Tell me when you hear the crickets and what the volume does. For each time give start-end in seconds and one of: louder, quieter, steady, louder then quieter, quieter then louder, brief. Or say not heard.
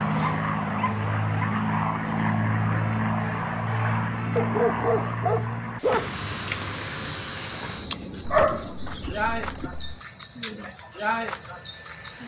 6.1-12.2 steady.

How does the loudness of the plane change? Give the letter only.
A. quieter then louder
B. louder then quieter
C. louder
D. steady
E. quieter
E.